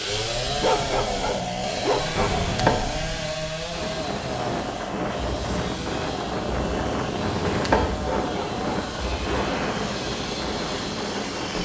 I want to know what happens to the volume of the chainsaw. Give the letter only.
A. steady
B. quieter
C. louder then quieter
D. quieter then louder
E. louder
B.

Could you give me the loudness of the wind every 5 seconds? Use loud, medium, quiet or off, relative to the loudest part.
medium, loud, loud.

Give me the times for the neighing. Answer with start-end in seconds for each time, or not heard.
2.1-2.9, 7.2-7.9.